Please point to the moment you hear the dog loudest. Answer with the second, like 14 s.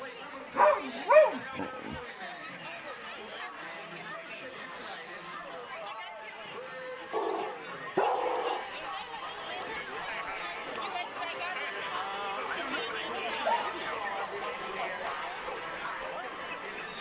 1 s.